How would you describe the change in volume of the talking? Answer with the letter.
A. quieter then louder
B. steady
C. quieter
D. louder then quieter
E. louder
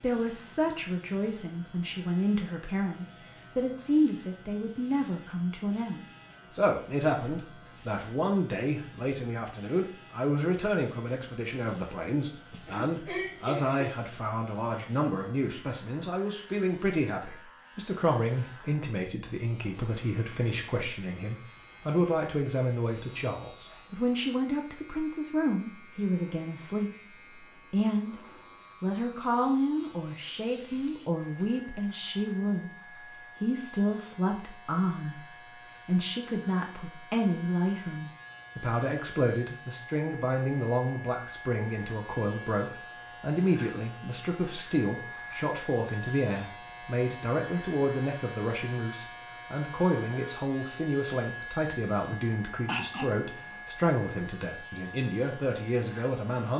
B.